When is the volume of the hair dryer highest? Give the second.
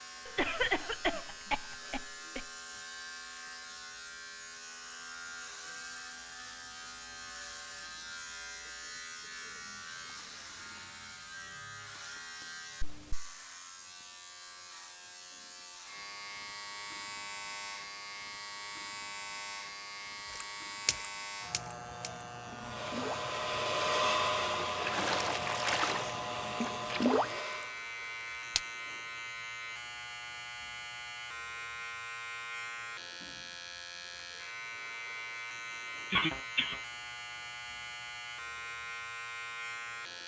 24 s.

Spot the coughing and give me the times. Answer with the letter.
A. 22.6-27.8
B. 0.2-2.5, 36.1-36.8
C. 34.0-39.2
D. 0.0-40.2
B.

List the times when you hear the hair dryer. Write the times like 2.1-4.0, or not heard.
22.6-27.8.